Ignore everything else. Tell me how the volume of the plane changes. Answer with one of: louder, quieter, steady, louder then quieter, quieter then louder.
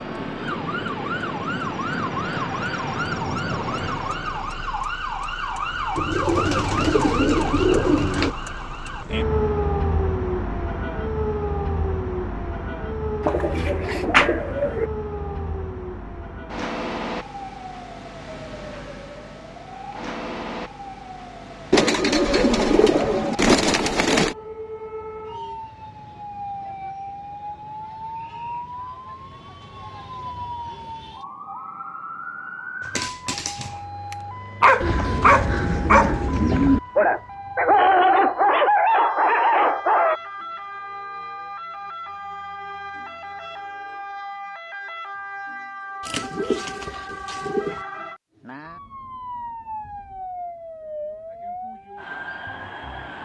quieter.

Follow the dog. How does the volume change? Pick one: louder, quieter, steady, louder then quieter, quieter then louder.
louder.